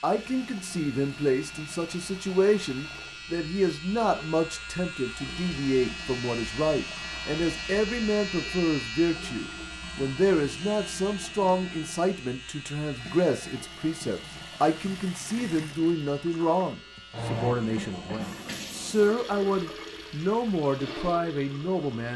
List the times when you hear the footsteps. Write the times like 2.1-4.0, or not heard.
not heard.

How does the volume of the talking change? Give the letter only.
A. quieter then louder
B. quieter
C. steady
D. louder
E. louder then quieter
C.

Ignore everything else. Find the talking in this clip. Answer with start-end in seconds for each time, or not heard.
0.0-22.1.